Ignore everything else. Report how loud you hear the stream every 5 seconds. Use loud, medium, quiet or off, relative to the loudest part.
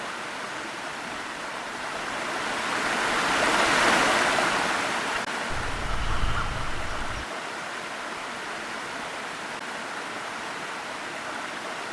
loud, medium, medium.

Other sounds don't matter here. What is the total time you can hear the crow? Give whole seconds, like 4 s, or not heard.
2 s.